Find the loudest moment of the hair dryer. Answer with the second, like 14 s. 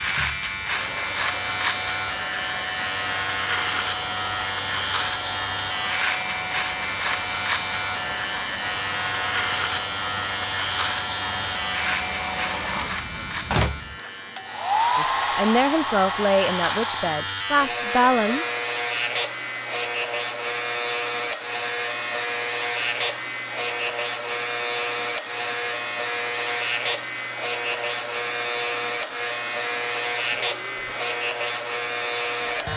15 s.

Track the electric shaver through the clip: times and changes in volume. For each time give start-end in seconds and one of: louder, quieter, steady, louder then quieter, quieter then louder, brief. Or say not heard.
0.0-32.7 steady.